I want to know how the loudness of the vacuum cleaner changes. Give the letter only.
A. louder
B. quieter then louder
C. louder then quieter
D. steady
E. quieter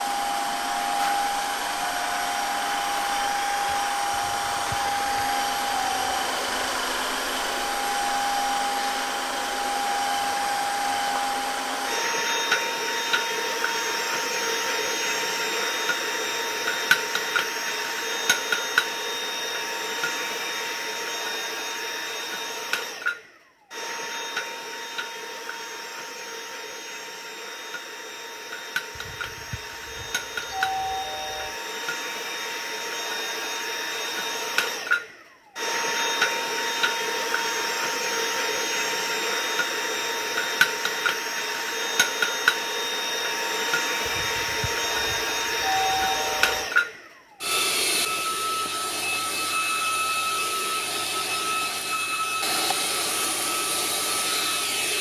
B.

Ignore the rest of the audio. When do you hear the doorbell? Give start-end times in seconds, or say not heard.
4.1-6.8, 28.9-31.6, 44.0-46.7.